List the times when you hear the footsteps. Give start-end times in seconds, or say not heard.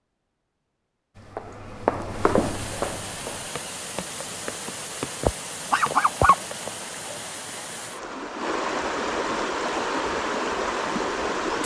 1.1-6.5.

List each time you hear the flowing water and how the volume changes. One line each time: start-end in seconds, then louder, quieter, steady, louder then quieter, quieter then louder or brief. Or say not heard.
2.2-11.6 louder.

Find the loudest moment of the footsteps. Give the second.
2 s.